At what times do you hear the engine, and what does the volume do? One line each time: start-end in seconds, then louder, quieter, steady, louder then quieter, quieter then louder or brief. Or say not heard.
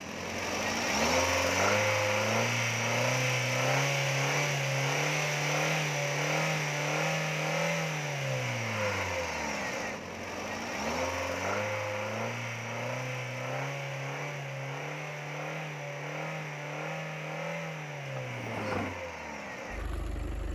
0.0-20.4 quieter.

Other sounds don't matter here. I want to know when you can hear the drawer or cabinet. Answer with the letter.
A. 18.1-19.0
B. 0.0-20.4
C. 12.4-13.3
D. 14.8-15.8
A.